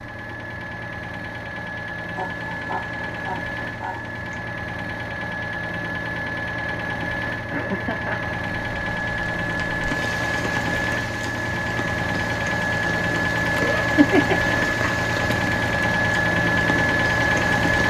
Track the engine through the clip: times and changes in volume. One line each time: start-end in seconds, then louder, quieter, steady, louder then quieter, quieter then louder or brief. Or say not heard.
0.0-17.8 louder.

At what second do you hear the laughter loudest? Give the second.
14 s.